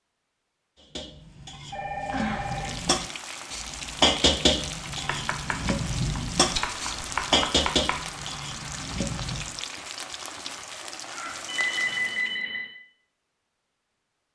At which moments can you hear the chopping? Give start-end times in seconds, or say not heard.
5.0-8.0.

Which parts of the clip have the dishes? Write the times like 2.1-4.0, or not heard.
0.9-9.5.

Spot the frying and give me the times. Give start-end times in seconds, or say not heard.
2.4-12.4.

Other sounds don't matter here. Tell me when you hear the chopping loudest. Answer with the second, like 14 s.
7 s.